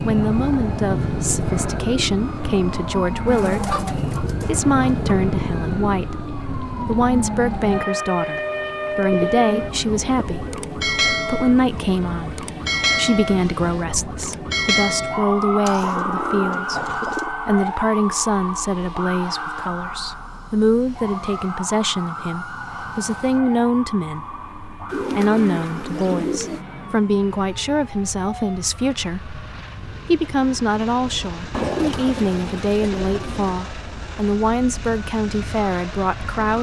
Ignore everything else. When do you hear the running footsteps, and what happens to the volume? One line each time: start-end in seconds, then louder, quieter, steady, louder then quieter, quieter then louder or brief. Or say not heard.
not heard.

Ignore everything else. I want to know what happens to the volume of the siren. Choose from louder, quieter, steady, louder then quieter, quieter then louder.
quieter.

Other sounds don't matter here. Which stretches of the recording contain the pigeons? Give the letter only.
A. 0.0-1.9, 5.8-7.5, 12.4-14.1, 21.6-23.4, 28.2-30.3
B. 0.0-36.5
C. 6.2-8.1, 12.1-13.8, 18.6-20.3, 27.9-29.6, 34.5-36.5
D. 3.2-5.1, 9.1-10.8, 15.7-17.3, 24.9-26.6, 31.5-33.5
D.